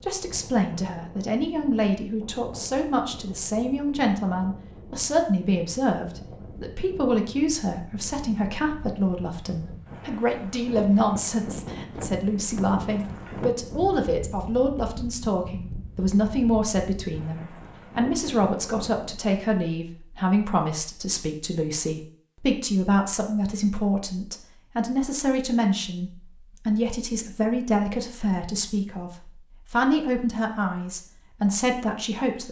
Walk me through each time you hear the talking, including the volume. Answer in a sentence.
You can hear the talking from 0.0 to 32.4 s, at a steady volume.